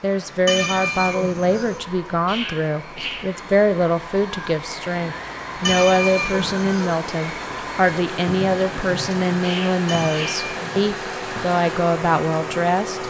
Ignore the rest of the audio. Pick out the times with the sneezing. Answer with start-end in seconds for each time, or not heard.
2.2-3.2, 9.4-10.4.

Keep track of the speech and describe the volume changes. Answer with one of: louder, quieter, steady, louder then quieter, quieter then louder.
steady.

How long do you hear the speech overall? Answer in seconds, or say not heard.
13 s.